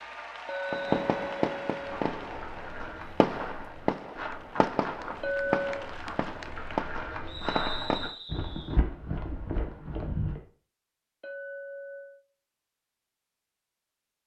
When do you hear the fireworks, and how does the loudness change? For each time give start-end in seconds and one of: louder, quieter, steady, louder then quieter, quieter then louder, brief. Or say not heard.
0.7-8.2 steady.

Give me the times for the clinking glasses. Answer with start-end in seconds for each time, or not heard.
0.5-1.9, 5.2-5.9, 11.2-12.2.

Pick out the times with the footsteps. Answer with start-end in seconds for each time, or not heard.
1.8-10.4.